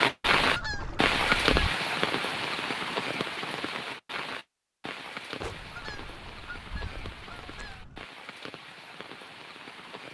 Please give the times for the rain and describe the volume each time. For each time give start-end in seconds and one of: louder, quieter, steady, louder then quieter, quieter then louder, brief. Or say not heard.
0.0-10.0 quieter.